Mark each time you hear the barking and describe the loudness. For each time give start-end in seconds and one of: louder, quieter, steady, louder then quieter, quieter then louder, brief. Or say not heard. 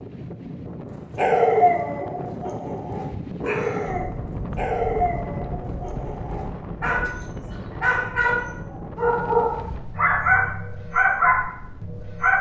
1.1-12.3 quieter then louder.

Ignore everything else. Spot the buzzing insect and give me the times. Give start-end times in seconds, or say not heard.
not heard.